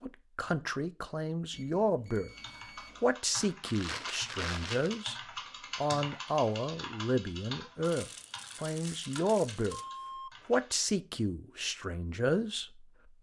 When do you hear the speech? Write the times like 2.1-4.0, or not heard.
0.0-2.3, 3.0-5.2, 5.8-9.8, 10.4-12.9.